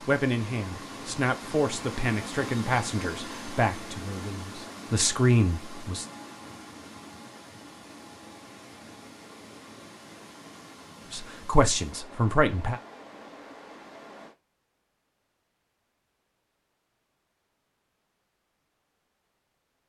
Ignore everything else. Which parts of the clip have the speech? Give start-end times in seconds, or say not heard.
0.1-6.0, 11.1-12.8.